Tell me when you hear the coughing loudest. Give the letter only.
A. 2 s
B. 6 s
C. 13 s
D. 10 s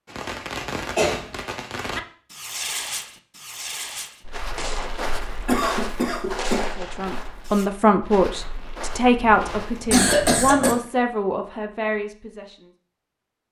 D.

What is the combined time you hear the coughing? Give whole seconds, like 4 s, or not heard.
3 s.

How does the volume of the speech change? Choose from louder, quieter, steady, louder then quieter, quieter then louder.
quieter.